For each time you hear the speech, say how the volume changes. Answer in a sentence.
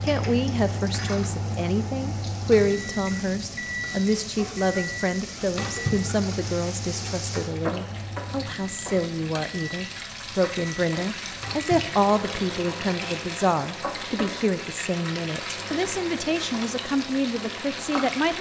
You can hear the speech from 0.0 to 18.3 s, at a steady volume.